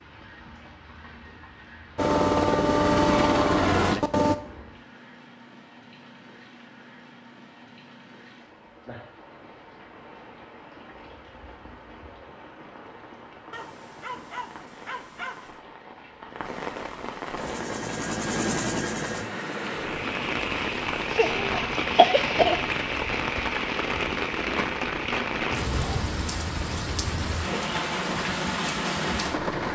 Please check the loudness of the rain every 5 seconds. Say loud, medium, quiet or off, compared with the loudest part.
quiet, quiet, quiet, medium, loud, loud.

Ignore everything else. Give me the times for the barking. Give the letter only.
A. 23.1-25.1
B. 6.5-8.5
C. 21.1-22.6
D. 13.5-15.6
D.